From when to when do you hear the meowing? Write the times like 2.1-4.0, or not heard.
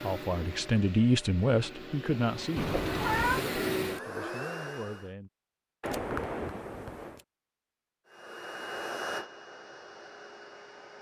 2.5-3.5, 5.8-7.2.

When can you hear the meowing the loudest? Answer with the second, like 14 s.
3 s.